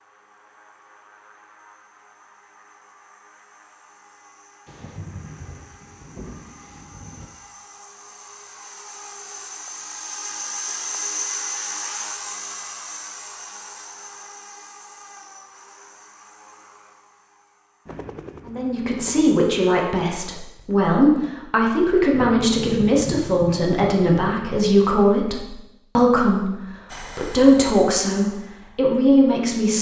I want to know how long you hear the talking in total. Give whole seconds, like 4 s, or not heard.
11 s.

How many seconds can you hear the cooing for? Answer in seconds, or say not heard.
not heard.